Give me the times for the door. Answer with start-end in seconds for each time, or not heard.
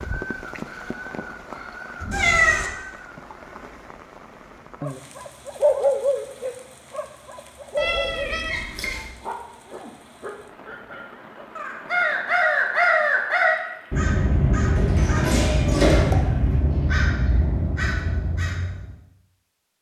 14.8-16.1.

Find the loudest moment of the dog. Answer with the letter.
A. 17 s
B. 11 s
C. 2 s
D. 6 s
D.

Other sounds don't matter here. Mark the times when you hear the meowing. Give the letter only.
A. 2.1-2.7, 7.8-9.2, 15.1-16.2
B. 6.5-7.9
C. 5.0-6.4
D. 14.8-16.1
A.